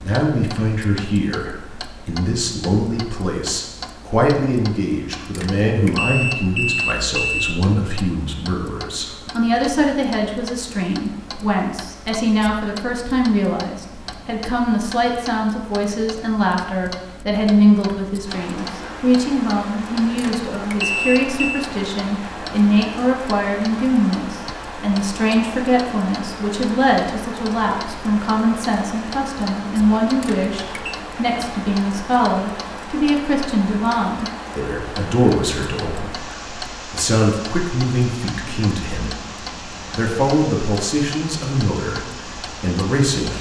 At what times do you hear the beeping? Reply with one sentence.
You can hear the beeping from 5.3 to 7.6 s, from 20.1 to 21.6 s and from 30.2 to 31.0 s.